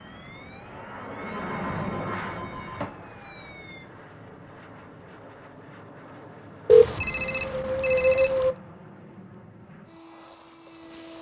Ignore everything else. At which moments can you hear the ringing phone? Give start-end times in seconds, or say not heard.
1.4-2.9, 6.7-8.6.